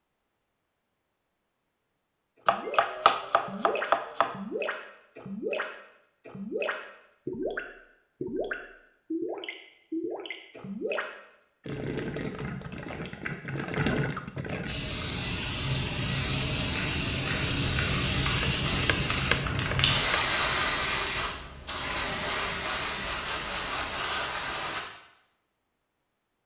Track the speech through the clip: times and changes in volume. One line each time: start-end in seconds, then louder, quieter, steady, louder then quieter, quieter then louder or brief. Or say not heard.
not heard.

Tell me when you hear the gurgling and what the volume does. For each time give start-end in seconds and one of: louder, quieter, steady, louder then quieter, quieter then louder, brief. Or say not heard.
2.5-14.8 steady.